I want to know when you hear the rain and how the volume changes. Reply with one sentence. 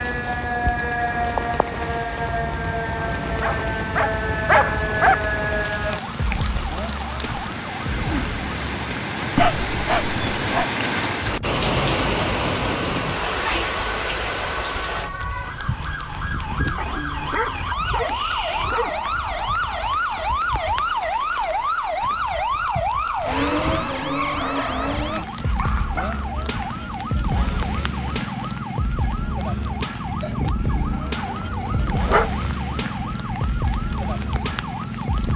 You can hear the rain from 0.0 to 35.3 s, getting louder then quieter.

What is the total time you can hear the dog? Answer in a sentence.
The dog can be heard for 9 seconds in total.